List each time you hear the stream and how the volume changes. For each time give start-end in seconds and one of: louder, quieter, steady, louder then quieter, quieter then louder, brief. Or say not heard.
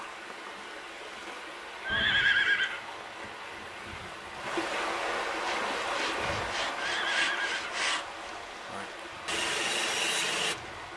0.0-10.9 louder then quieter.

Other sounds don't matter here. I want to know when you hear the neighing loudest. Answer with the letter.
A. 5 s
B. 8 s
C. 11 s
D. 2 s
D.